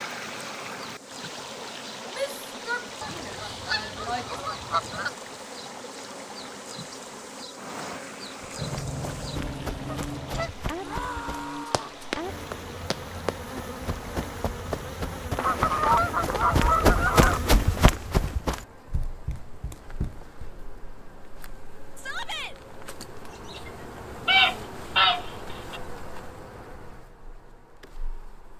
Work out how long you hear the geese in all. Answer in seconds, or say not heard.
8 s.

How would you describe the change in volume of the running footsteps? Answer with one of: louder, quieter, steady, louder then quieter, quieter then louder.
louder then quieter.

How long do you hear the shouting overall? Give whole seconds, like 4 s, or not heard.
4 s.